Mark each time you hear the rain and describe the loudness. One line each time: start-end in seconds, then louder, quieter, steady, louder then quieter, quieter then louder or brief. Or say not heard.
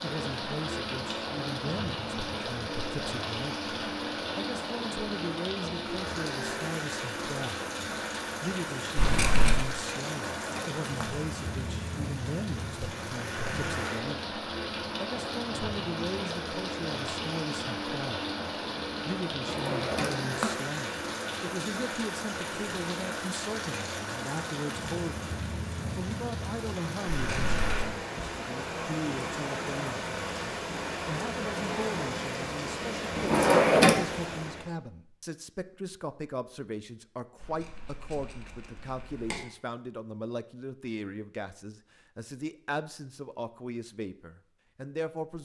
0.0-34.7 steady.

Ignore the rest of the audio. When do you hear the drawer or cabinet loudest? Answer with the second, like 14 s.
34 s.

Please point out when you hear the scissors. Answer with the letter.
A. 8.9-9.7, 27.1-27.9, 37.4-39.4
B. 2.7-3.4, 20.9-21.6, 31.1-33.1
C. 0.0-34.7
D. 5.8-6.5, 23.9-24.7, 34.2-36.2
A.